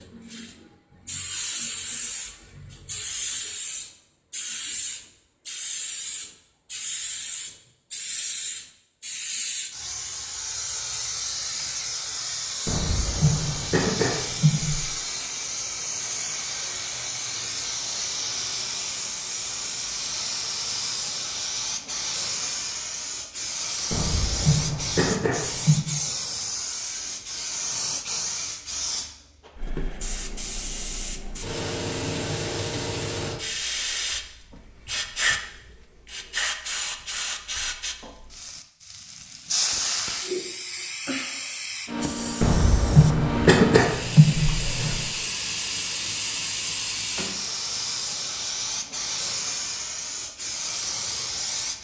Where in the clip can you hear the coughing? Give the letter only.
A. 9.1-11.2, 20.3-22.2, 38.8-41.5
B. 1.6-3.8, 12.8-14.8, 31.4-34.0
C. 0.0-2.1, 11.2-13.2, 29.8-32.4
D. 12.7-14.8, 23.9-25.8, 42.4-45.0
D.